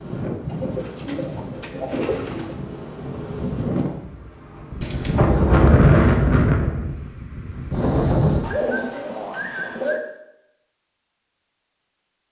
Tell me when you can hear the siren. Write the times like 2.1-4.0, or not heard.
not heard.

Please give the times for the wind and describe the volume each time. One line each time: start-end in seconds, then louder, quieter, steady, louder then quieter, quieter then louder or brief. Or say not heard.
0.0-8.4 louder then quieter.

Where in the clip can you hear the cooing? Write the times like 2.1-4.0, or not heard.
0.5-2.5, 4.8-6.3, 8.4-10.0.